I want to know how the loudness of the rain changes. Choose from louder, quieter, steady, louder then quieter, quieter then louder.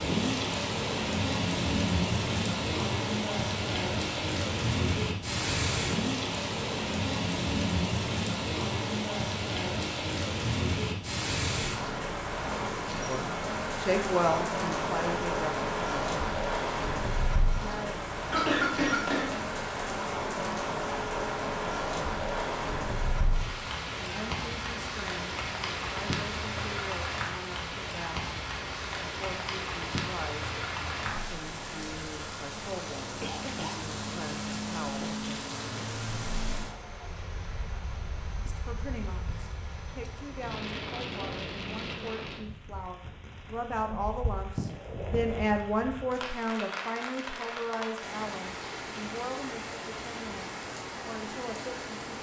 quieter.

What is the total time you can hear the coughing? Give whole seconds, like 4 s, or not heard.
2 s.